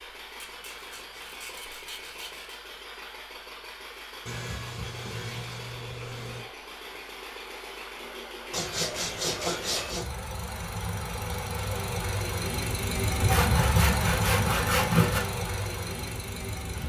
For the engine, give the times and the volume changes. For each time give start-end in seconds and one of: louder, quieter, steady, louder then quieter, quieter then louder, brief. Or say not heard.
0.0-16.8 louder.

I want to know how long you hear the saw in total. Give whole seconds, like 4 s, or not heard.
8 s.